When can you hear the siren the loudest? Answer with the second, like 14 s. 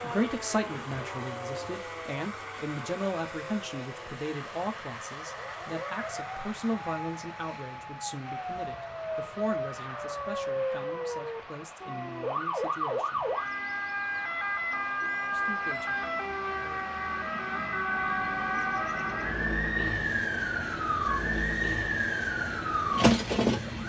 23 s.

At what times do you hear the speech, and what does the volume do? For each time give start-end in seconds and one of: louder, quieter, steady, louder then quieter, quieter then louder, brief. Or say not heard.
0.0-13.2 quieter
15.3-16.1 brief.